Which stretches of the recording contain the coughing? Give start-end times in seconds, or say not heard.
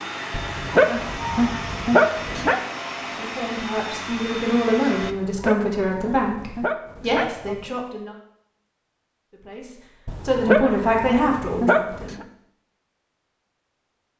not heard.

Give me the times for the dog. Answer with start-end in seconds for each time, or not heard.
0.3-2.6, 5.0-7.8, 10.1-12.2.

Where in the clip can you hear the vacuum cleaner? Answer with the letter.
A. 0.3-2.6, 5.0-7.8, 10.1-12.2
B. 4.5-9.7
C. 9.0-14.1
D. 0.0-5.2
D.